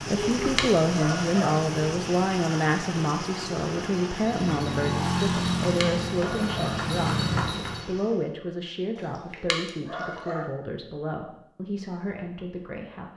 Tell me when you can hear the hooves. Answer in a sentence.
You can hear the hooves from 4.2 to 7.8 s.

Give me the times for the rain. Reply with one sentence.
You can hear the rain from 0.0 to 8.3 s.